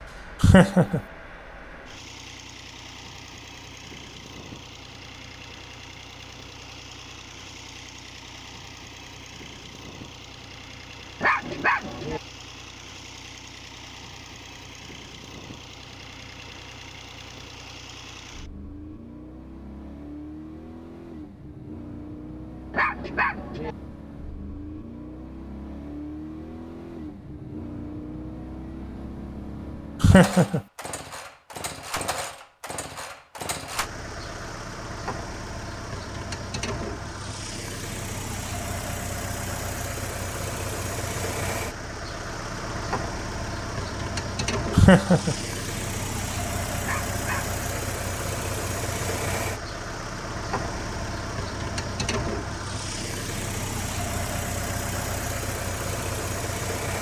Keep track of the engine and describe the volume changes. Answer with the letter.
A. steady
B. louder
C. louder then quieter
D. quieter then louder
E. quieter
B.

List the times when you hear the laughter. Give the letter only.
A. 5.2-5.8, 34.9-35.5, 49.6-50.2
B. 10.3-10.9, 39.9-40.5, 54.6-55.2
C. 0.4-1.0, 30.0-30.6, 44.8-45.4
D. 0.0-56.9
C.